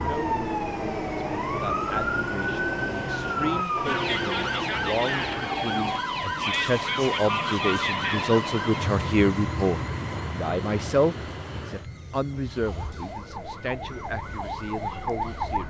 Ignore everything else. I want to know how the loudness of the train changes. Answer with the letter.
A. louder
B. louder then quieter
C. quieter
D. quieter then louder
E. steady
C.